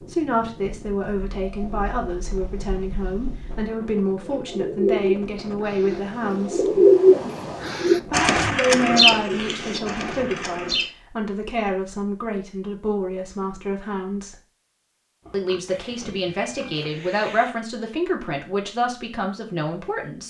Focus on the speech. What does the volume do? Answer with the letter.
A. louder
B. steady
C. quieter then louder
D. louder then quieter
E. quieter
B.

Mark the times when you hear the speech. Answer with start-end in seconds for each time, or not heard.
0.0-6.8, 8.1-14.3, 15.3-20.2.